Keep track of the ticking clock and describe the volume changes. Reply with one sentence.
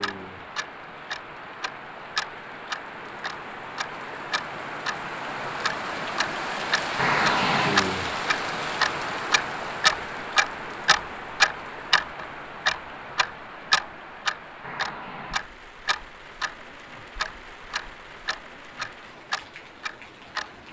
The loudness of the ticking clock goes up, then down.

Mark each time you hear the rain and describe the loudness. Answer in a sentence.
The rain can be heard from 0.0 to 20.6 s, getting louder then quieter.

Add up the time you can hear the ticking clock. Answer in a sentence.
The ticking clock can be heard for 20 seconds in total.